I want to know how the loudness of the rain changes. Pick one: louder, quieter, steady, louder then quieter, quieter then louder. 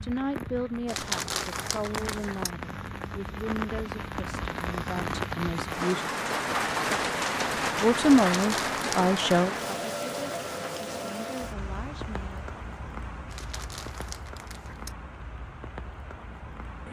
louder then quieter.